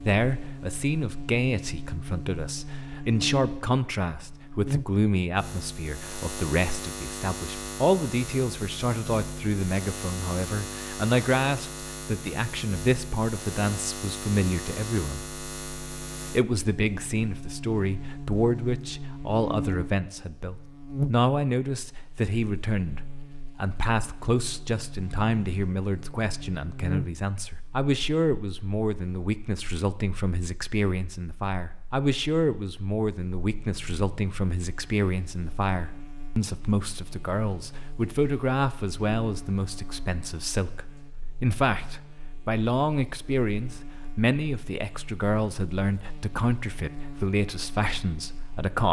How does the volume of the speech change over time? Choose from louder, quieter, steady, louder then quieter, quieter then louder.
steady.